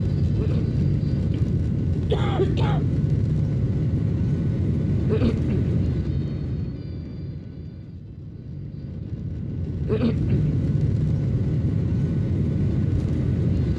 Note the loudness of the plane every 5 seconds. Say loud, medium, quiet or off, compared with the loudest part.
loud, medium, loud.